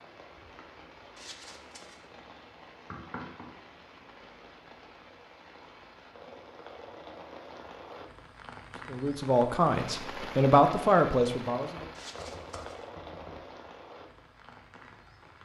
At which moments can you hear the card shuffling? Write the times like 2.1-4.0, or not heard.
1.1-2.0, 11.9-12.8.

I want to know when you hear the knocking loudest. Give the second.
3 s.